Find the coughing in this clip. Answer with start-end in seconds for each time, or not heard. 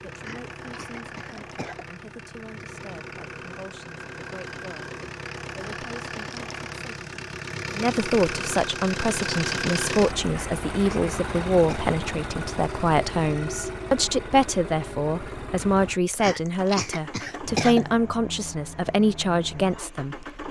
0.1-1.9, 10.2-11.9, 16.1-17.9.